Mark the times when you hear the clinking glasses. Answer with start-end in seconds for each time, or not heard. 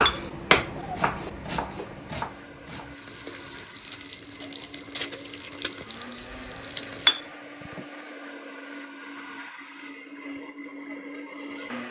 0.1-0.8, 7.0-7.8.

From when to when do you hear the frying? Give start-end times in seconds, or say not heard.
3.0-7.2.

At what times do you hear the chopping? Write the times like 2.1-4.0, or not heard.
0.0-3.0.